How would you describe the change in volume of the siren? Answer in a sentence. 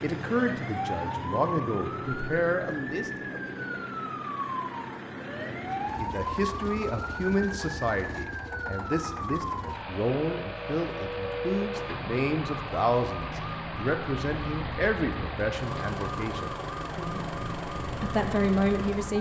The volume of the siren stays about the same.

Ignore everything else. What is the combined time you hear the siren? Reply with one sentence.
The siren can be heard for 19 seconds in total.